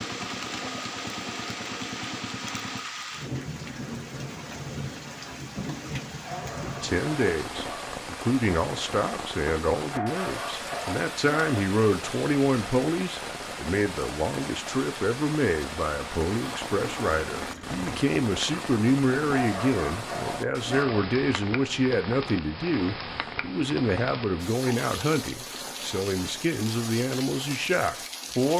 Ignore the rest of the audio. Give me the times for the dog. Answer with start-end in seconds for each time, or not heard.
6.2-8.0, 9.9-11.6, 19.3-21.0.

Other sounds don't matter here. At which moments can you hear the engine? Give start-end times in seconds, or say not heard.
0.0-2.9, 16.4-17.9.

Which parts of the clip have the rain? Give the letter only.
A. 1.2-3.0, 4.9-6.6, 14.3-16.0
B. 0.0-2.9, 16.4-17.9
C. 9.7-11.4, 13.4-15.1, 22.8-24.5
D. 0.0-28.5
D.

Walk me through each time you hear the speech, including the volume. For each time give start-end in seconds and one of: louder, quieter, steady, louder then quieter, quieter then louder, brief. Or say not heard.
6.3-28.5 steady.